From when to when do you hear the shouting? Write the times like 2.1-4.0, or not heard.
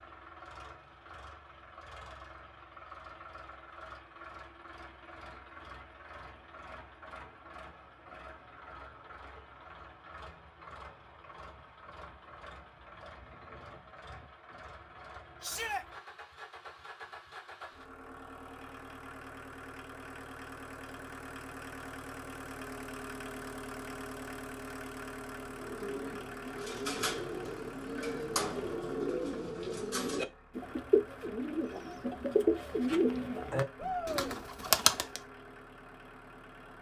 15.4-15.8, 33.8-34.4.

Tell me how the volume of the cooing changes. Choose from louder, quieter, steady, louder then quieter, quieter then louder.
louder.